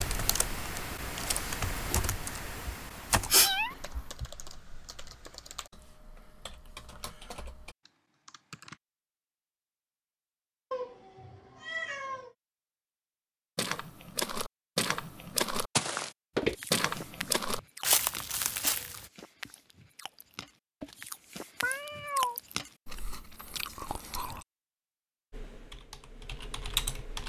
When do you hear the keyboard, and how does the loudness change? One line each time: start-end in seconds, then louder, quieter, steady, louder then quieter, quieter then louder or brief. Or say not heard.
0.0-8.8 quieter
25.3-27.2 brief.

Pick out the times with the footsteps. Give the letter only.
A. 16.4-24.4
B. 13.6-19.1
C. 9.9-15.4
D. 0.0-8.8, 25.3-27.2
B.